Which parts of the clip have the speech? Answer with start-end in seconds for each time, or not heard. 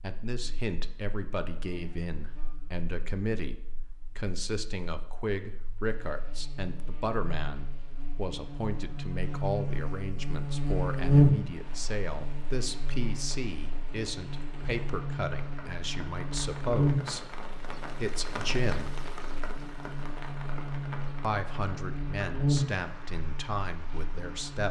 0.0-18.9, 21.2-24.6.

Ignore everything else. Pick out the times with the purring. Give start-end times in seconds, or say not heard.
not heard.